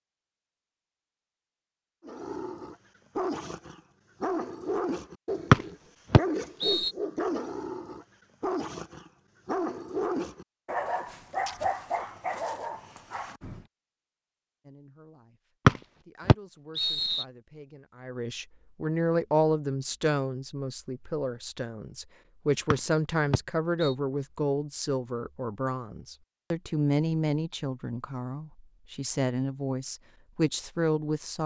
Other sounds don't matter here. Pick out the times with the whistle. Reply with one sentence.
The whistle can be heard from 5.5 to 6.9 s, from 15.7 to 17.2 s and from 22.7 to 23.9 s.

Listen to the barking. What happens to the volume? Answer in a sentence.
The loudness of the barking stays about the same.